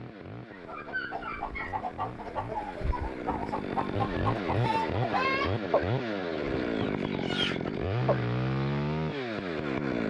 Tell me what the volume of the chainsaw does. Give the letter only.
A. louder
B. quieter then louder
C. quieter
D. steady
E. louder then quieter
A.